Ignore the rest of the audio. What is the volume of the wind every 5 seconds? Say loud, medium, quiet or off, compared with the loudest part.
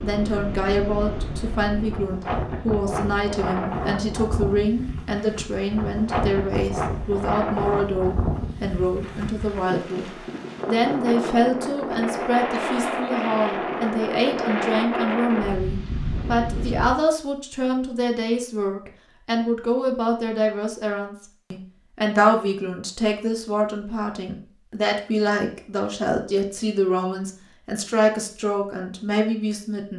loud, loud, loud, loud, off, off.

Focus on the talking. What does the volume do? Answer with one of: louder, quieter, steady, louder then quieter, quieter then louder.
steady.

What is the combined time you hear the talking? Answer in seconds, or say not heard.
30 s.